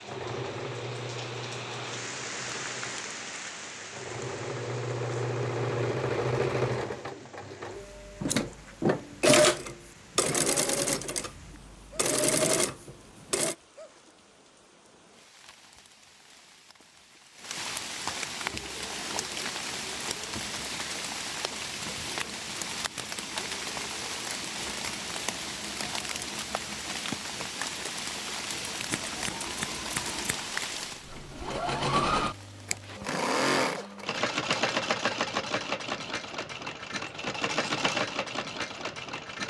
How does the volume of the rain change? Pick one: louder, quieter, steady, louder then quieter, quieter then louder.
quieter then louder.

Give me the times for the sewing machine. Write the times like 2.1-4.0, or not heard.
0.0-13.6, 18.4-39.4.